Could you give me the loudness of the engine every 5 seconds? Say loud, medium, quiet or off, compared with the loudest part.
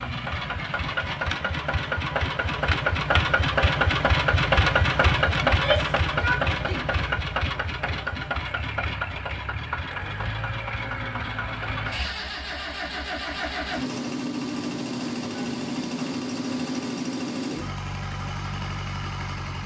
loud, loud, medium, medium.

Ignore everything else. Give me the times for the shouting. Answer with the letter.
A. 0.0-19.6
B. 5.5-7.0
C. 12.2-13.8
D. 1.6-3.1
B.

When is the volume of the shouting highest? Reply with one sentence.
The loudest moment of the shouting is at 6 seconds.